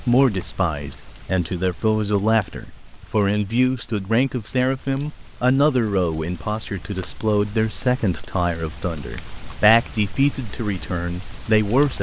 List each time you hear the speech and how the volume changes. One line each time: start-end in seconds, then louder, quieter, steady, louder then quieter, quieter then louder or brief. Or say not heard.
0.1-11.9 steady.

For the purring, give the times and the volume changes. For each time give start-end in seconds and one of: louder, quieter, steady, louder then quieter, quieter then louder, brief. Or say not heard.
not heard.